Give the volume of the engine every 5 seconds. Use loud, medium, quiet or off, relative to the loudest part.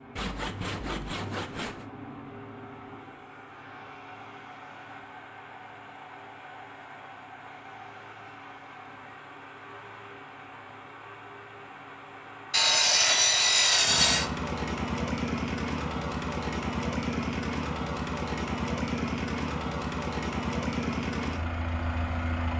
quiet, quiet, medium, loud, loud.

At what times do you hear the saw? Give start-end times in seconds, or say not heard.
0.1-1.9, 12.5-14.3.